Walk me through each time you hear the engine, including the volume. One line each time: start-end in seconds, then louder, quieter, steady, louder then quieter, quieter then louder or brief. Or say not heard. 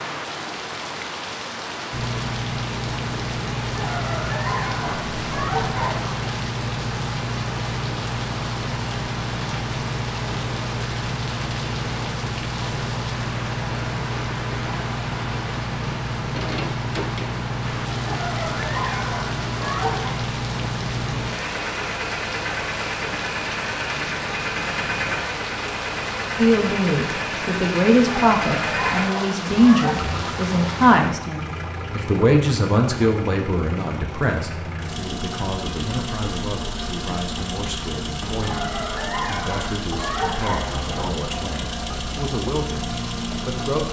1.9-43.8 steady.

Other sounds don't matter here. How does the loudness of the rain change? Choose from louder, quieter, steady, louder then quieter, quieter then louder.
steady.